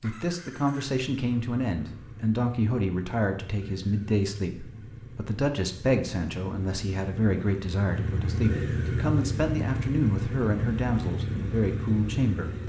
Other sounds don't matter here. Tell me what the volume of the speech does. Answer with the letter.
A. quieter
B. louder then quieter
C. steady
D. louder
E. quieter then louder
C.